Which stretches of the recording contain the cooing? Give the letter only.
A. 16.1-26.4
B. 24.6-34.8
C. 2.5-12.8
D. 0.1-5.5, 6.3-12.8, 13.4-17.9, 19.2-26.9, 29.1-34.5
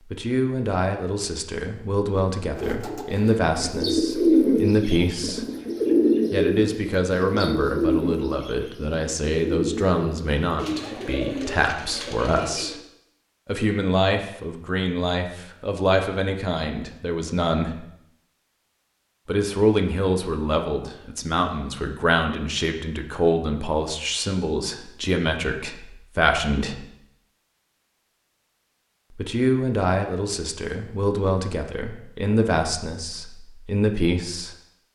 C.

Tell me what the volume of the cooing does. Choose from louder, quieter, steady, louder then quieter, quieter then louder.
quieter.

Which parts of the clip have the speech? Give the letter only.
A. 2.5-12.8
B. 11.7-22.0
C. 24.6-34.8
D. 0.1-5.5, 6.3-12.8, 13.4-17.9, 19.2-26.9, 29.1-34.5
D.